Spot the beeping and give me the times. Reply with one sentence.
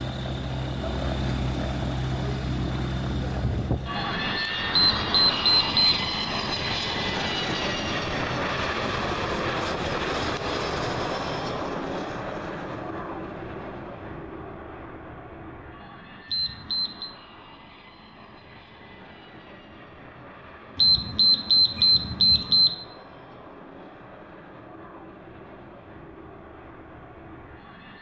You can hear the beeping from 4.7 to 6.1 s, from 16.2 to 17.1 s and from 20.8 to 22.7 s.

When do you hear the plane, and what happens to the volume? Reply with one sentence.
You can hear the plane from 0.0 to 27.9 s, getting quieter.